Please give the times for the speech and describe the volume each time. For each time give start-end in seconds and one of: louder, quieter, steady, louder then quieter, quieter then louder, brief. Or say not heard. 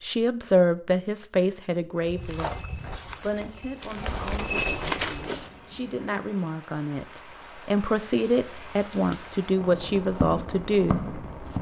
0.0-11.1 quieter then louder.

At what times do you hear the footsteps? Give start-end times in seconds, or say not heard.
2.0-5.5, 9.6-11.5.